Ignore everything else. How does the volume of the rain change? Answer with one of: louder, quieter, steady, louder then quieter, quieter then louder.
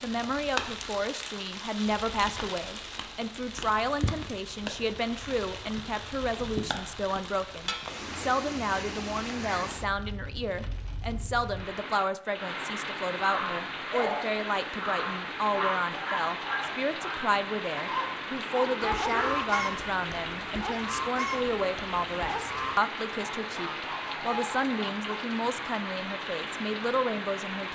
steady.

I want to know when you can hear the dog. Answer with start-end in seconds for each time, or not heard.
13.2-19.4.